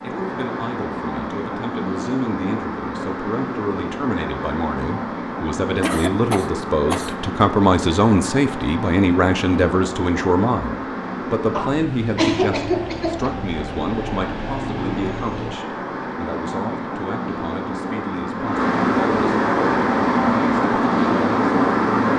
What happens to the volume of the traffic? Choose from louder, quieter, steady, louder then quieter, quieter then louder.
louder.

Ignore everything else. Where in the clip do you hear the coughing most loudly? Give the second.
12 s.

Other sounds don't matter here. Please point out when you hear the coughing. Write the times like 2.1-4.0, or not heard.
5.8-7.2, 11.5-13.3.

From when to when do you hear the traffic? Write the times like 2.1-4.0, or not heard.
0.0-22.1.